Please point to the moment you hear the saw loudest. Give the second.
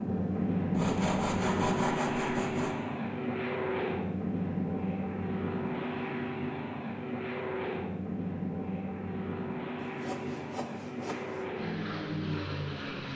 2 s.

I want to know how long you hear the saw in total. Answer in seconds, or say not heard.
4 s.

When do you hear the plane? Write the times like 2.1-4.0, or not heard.
0.0-13.1.